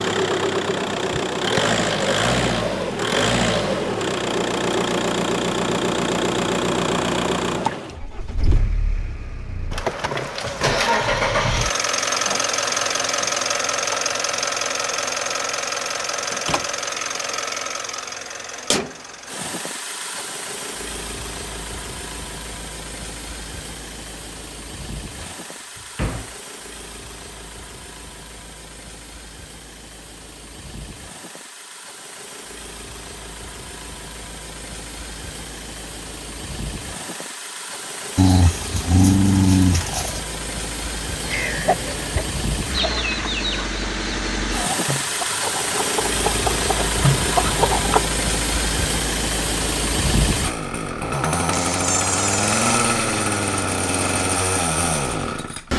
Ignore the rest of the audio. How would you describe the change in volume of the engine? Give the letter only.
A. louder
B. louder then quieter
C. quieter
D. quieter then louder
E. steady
D.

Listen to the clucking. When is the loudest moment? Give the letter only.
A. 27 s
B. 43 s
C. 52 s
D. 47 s
D.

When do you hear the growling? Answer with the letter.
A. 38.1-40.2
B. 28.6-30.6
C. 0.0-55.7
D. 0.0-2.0
A.